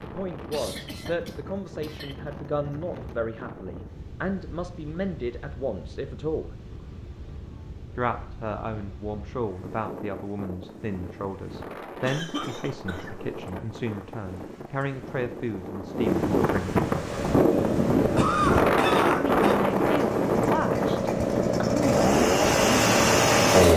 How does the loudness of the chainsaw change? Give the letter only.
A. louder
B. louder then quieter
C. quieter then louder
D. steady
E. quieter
A.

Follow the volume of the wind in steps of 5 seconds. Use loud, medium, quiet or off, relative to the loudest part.
quiet, quiet, quiet, loud, loud.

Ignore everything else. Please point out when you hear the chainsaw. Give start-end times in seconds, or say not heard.
16.9-23.7.